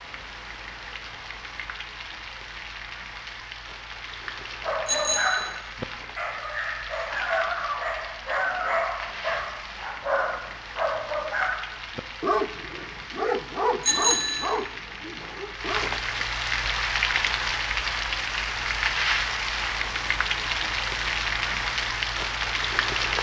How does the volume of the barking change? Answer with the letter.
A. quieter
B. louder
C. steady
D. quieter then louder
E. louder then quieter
C.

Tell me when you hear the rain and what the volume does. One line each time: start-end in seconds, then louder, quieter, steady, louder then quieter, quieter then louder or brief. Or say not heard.
0.0-23.1 louder.